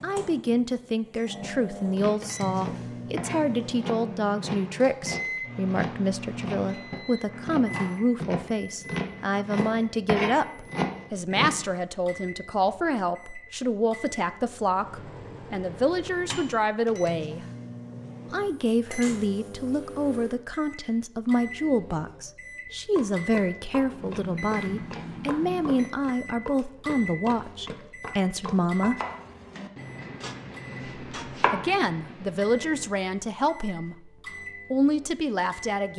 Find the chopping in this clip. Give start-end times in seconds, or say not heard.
1.4-11.7, 22.9-32.9.